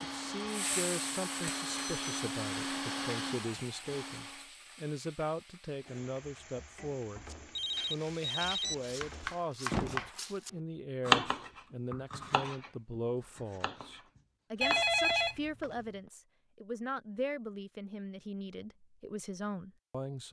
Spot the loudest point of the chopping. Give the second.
11 s.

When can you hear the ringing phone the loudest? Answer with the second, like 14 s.
15 s.